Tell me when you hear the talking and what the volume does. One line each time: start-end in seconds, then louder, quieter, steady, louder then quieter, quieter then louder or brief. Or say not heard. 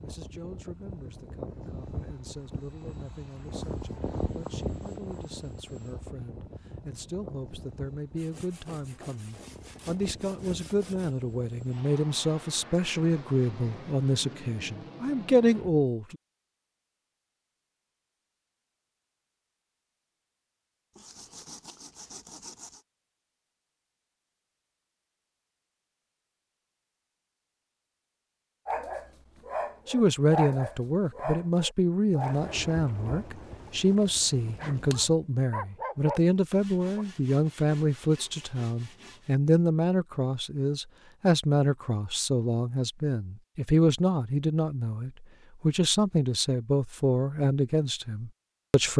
0.0-16.1 louder
29.9-48.9 steady.